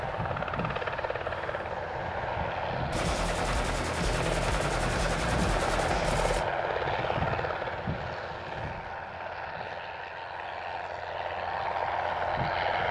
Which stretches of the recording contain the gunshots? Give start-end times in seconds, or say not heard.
2.9-6.5.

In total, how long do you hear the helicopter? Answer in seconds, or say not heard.
13 s.